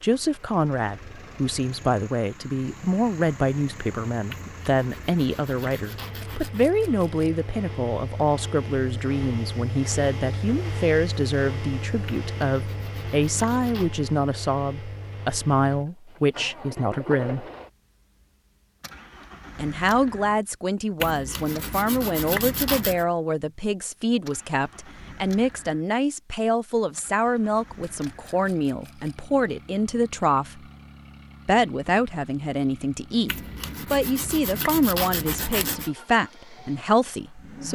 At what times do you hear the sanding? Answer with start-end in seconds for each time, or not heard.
4.3-6.7, 12.1-13.9, 21.0-23.1, 33.2-35.9.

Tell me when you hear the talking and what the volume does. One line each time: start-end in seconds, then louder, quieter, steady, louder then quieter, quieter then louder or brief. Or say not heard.
0.0-17.5 steady
19.6-30.6 steady
31.4-37.7 steady.